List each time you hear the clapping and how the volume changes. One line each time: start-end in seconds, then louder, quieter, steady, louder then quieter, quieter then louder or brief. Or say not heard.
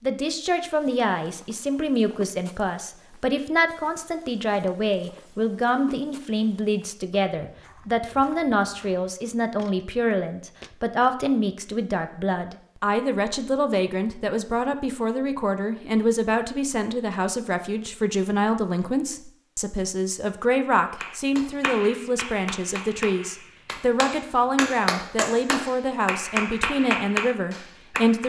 21.0-28.2 louder.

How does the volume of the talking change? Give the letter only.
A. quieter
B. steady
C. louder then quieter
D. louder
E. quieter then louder
B.